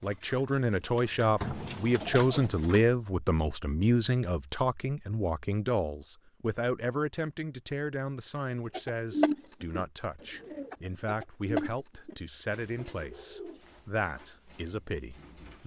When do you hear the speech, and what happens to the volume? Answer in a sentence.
You can hear the speech from 0.0 to 15.6 s, getting quieter.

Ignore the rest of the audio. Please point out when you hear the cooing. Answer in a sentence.
The cooing can be heard from 0.0 to 2.9 s and from 8.7 to 15.6 s.